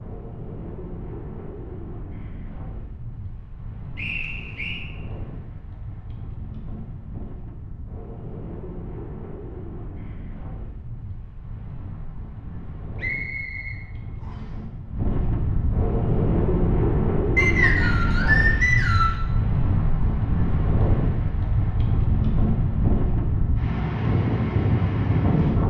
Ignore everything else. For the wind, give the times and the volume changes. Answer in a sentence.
The wind can be heard from 0.0 to 25.6 s, getting louder.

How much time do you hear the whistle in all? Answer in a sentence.
You can hear the whistle for 4 seconds altogether.